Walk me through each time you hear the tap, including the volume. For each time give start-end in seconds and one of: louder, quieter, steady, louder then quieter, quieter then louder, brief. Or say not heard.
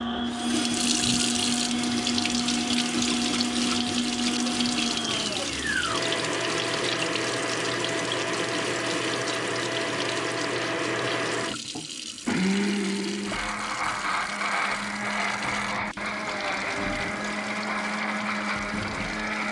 0.0-19.4 quieter.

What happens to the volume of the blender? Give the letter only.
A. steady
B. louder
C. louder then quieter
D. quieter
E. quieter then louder
A.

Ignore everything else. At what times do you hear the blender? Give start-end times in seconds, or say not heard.
0.0-19.4.